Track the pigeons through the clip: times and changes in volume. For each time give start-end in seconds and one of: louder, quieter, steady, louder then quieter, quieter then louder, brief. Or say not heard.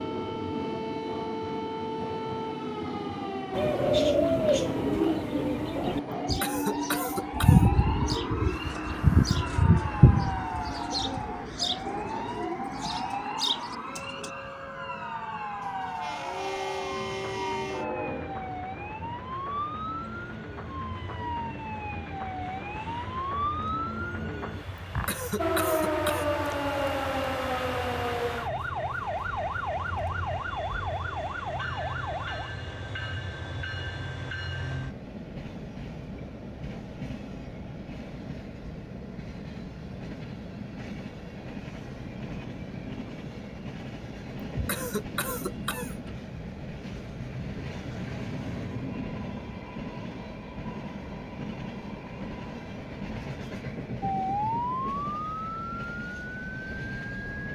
3.5-14.3 quieter.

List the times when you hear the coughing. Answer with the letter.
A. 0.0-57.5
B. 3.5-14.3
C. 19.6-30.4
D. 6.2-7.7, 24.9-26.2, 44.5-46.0
D.